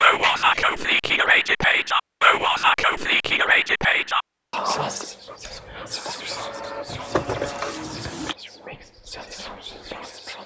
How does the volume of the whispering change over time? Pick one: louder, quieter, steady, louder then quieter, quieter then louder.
quieter.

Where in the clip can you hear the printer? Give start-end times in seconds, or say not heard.
5.2-8.3.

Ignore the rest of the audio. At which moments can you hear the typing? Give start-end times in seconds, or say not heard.
not heard.